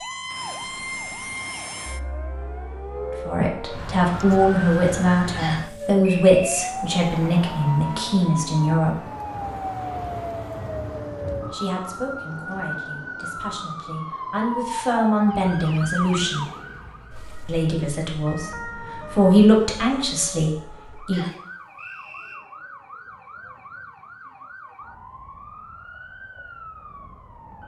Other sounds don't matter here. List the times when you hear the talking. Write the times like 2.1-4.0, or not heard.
3.2-8.9, 11.4-16.4, 17.4-21.2.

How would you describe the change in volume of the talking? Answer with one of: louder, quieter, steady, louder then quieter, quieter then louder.
quieter then louder.